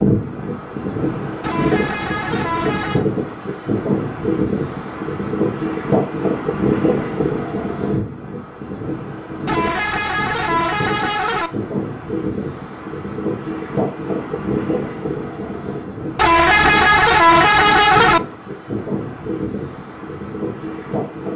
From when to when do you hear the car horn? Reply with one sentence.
The car horn can be heard from 1.4 to 3.0 s, from 9.4 to 11.5 s and from 16.1 to 18.2 s.